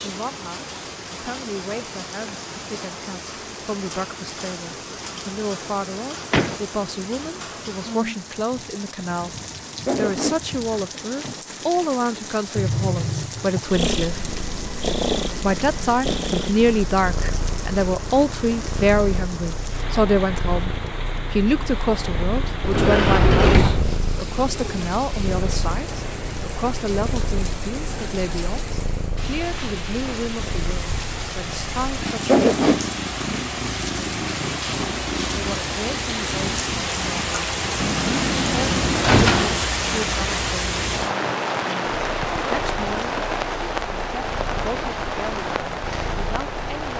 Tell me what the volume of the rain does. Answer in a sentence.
The volume of the rain goes up.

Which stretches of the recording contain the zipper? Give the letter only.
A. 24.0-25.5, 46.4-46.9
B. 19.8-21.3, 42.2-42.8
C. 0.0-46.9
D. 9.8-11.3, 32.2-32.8
D.